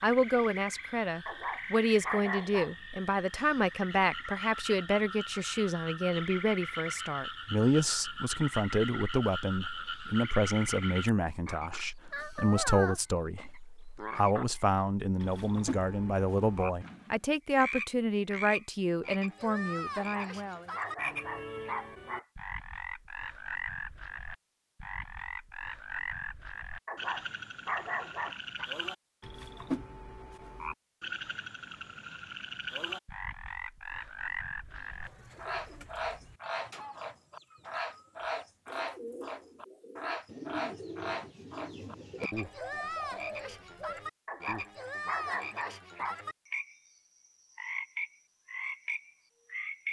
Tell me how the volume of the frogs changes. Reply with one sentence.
The volume of the frogs stays about the same.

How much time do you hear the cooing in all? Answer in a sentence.
You can hear the cooing for 10 seconds altogether.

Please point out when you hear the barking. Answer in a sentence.
The barking can be heard from 1.2 to 2.7 s, from 20.0 to 22.2 s, from 26.9 to 28.6 s and from 44.2 to 46.1 s.